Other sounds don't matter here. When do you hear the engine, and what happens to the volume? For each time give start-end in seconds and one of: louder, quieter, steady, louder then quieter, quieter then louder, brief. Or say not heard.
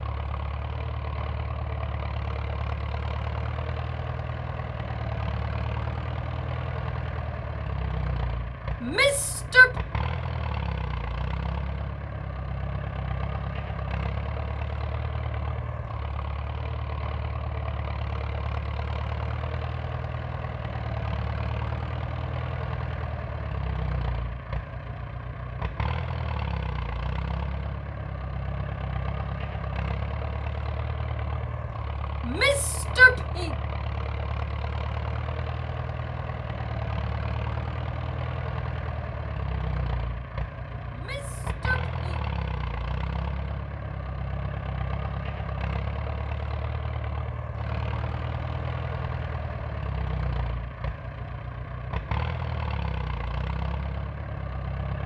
0.0-55.0 steady.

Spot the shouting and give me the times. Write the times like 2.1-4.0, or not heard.
8.8-9.7, 32.2-33.5, 40.9-42.2.